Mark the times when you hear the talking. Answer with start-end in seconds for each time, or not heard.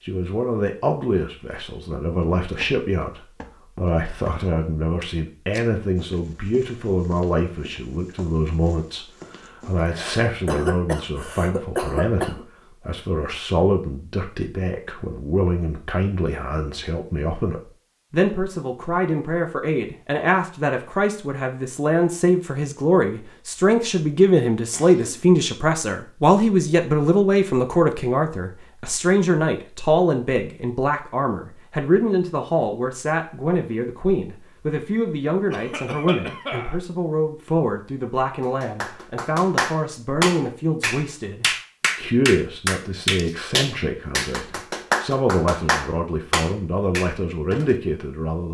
0.0-48.4.